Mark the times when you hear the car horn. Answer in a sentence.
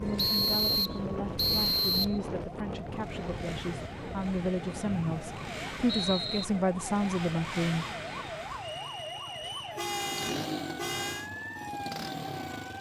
You can hear the car horn from 9.4 to 11.3 s.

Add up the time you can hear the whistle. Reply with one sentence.
The whistle can be heard for 5 seconds in total.